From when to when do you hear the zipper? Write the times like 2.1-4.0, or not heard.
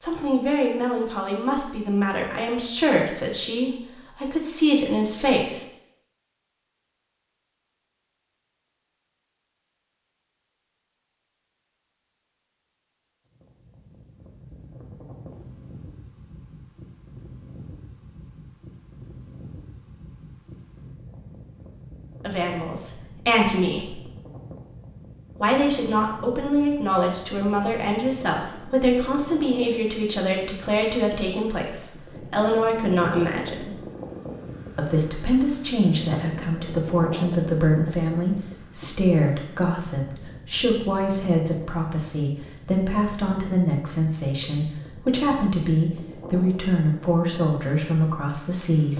not heard.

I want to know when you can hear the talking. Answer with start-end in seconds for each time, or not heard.
0.0-5.7, 22.2-24.0, 25.4-33.8, 34.8-48.9.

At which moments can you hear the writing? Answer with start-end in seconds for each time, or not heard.
not heard.